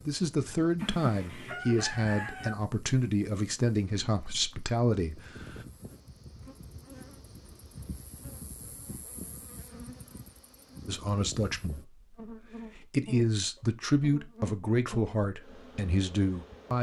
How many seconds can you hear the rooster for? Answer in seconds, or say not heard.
2 s.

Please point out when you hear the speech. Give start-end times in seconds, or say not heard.
0.1-5.7, 10.8-16.7.